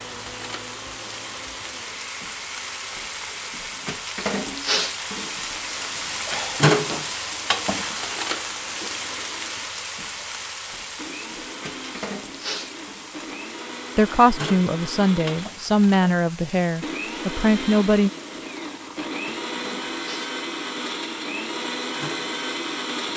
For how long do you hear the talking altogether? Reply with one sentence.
The talking can be heard for 4 seconds in total.